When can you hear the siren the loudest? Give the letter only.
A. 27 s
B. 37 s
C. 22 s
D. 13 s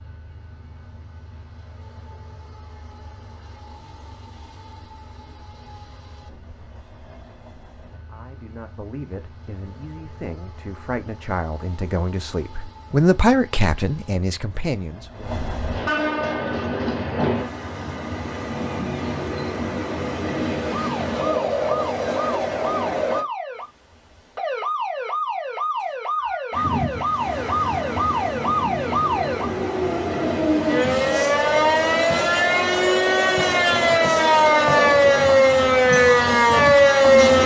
B.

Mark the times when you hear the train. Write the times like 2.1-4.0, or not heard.
0.0-23.2, 26.5-37.4.